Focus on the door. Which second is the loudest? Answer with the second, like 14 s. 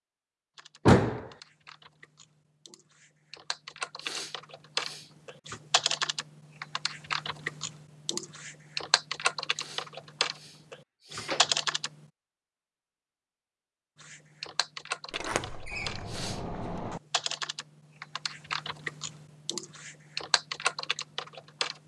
1 s.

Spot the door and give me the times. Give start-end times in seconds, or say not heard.
0.8-1.2, 11.2-11.6, 15.1-17.0.